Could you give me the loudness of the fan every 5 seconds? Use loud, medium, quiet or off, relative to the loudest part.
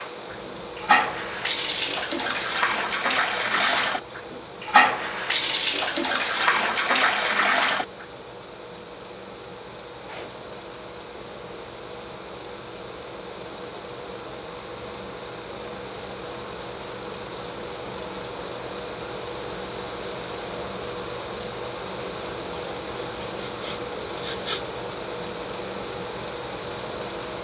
medium, medium, medium, loud, loud, loud.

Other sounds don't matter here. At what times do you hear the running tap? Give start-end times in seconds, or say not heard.
0.0-8.1.